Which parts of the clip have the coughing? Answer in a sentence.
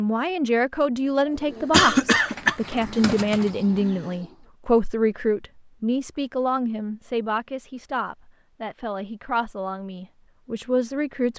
You can hear the coughing from 1.7 to 2.5 s.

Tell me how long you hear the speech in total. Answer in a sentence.
The speech can be heard for 11 seconds in total.